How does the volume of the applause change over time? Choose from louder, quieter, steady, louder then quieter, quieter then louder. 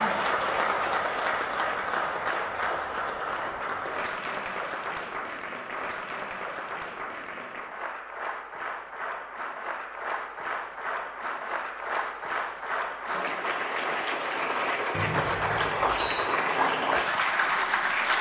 quieter then louder.